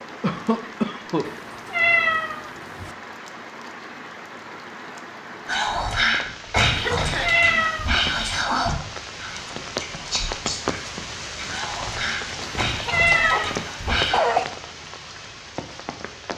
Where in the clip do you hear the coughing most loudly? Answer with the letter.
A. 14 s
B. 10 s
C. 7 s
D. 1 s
A.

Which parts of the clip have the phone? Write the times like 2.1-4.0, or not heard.
not heard.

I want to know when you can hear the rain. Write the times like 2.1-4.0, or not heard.
0.0-16.3.